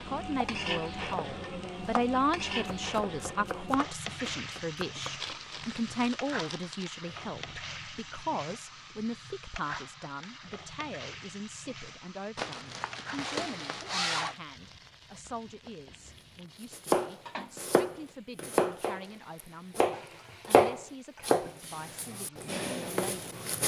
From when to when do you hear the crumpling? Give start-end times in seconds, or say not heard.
5.2-6.8, 12.3-14.3.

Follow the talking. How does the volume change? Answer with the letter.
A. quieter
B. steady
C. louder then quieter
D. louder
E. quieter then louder
A.